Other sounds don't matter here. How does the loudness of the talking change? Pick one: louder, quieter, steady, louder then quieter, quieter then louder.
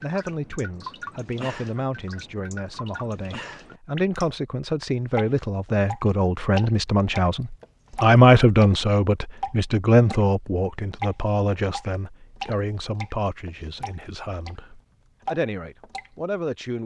louder then quieter.